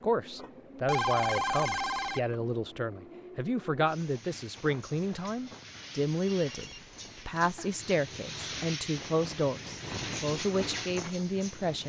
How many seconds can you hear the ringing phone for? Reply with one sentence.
You can hear the ringing phone for 3 seconds altogether.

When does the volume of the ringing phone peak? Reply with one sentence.
The loudest moment of the ringing phone is at 1 second.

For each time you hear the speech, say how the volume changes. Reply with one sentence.
You can hear the speech from 0.0 to 11.8 s, at a steady volume.